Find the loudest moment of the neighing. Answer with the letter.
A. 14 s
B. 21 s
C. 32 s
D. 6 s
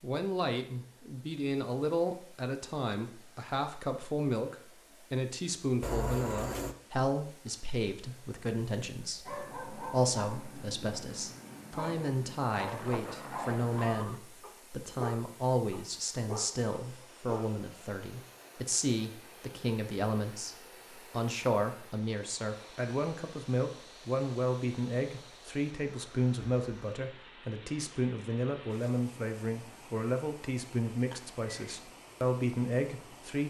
D.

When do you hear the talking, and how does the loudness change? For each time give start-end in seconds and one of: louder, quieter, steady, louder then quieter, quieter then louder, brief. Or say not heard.
0.0-33.4 steady.